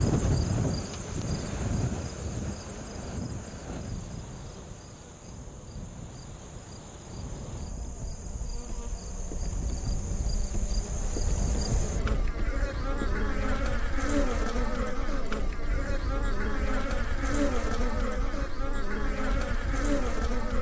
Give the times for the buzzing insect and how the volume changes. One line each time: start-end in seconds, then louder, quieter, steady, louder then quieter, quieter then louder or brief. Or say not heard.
0.0-20.5 quieter then louder.